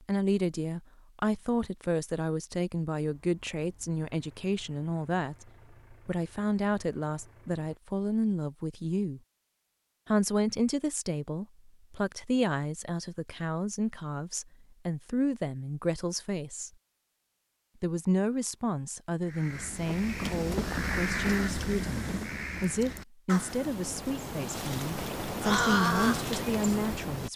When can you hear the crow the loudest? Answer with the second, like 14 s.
26 s.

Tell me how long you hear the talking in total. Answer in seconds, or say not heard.
25 s.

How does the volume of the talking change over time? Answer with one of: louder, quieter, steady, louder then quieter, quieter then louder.
steady.